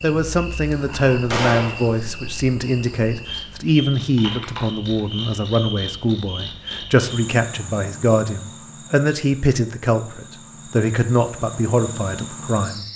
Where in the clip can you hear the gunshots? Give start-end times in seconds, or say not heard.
1.3-1.8.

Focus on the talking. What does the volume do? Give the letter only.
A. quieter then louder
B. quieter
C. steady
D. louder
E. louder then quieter
C.